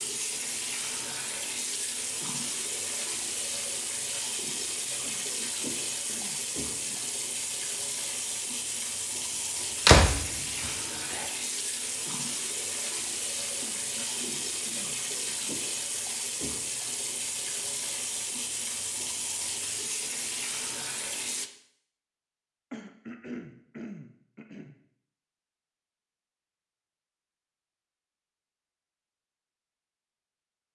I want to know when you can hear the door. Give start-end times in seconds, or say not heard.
9.3-11.2.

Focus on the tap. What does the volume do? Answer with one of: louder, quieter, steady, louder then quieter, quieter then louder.
steady.